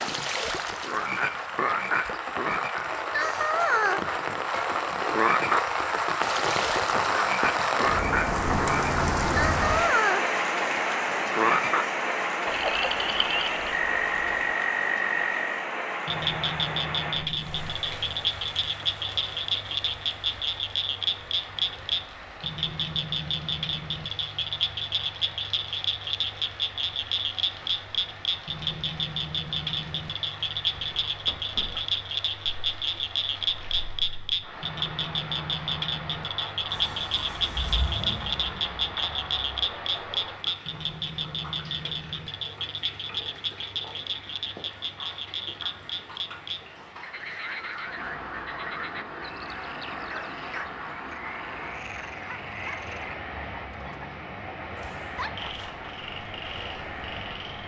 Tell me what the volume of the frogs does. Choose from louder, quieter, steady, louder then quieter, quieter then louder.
quieter.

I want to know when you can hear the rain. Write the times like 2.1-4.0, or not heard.
0.0-57.6.